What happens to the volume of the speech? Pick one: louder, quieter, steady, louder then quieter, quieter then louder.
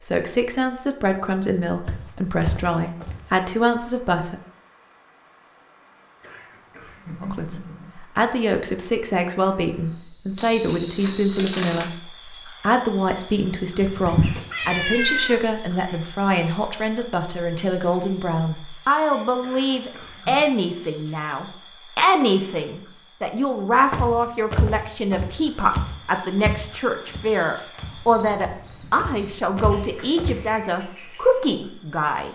steady.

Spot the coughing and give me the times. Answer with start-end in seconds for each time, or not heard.
6.2-7.9, 19.4-20.4.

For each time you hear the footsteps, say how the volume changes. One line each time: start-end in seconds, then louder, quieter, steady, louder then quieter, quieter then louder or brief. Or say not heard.
1.9-3.3 brief
23.9-30.5 quieter then louder.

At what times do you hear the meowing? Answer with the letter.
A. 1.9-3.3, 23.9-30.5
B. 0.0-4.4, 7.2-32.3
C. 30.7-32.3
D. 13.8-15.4
D.